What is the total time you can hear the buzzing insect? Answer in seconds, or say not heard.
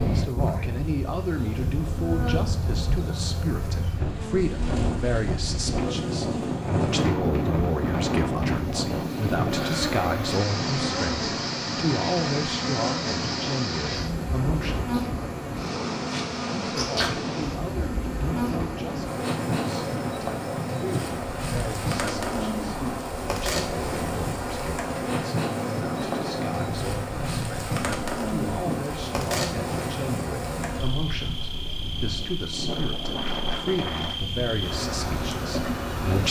36 s.